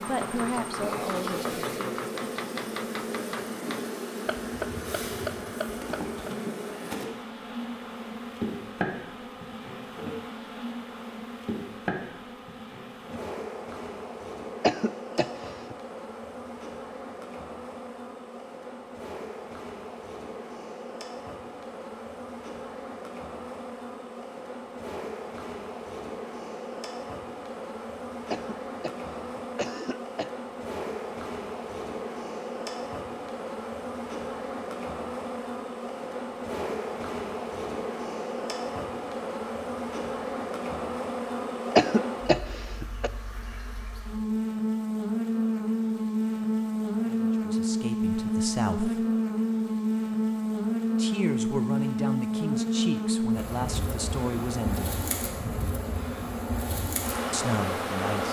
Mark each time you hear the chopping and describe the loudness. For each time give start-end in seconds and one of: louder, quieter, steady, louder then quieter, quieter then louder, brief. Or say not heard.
0.0-6.3 steady.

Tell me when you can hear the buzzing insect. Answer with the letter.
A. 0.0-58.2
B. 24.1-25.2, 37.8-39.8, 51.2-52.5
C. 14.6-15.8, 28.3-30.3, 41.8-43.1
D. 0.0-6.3
A.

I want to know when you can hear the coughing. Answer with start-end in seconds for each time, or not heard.
14.6-15.8, 28.3-30.3, 41.8-43.1.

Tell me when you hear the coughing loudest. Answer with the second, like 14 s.
42 s.